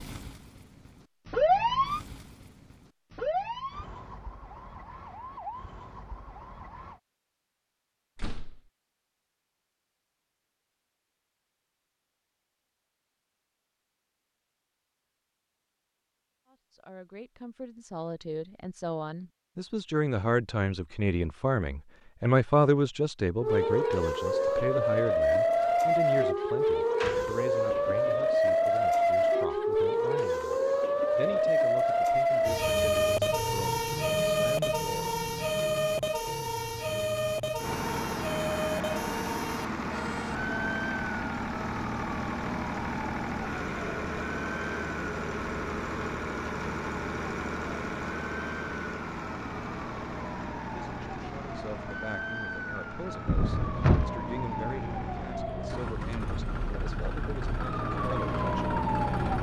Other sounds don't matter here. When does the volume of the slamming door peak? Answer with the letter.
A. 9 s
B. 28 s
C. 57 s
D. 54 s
D.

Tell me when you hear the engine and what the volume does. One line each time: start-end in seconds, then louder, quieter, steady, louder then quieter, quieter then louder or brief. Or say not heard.
37.6-59.3 quieter.